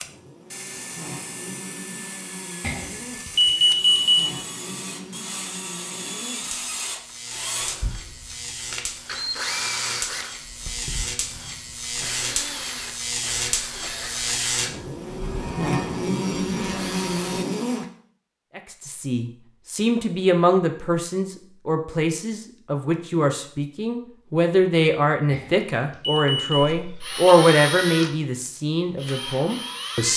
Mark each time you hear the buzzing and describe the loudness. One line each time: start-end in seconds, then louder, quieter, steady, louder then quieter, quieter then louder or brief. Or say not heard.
0.0-17.9 louder.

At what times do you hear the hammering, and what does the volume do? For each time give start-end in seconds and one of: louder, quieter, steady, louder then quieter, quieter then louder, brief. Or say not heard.
not heard.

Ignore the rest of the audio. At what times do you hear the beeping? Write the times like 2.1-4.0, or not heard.
2.6-4.2, 25.3-26.6.